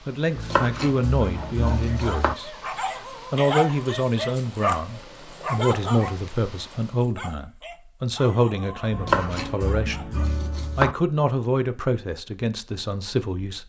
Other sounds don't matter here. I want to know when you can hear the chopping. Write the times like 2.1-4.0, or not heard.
0.3-2.4, 8.9-10.9.